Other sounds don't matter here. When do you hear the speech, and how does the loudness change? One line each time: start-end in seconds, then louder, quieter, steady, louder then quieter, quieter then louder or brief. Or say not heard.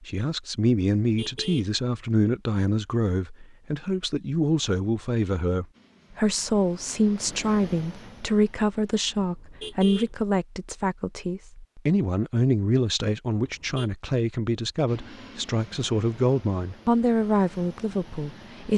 0.0-18.7 steady.